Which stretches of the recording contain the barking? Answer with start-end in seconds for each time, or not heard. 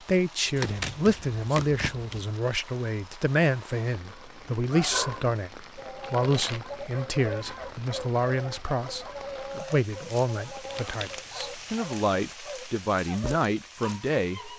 4.1-14.5.